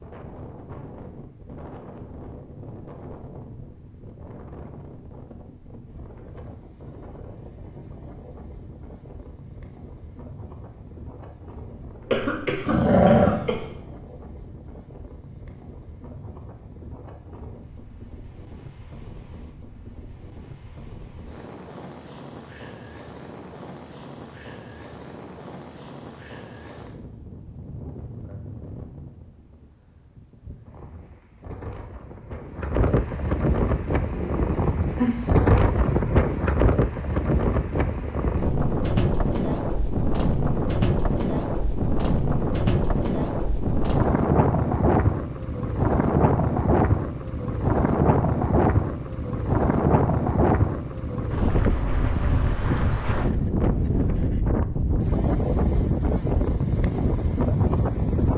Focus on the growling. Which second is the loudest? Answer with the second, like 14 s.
13 s.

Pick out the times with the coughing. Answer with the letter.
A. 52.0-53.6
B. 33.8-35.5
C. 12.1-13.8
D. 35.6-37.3
C.